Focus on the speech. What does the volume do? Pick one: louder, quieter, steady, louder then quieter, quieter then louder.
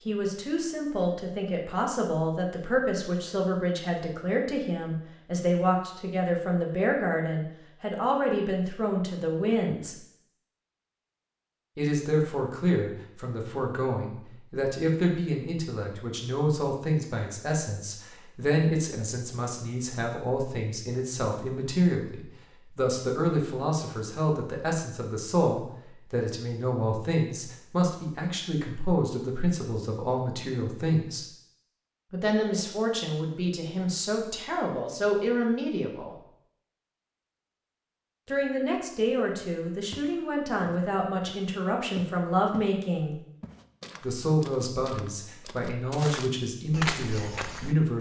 steady.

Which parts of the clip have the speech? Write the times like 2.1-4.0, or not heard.
0.1-9.9, 11.8-31.2, 32.1-36.1, 38.2-43.1, 44.0-47.9.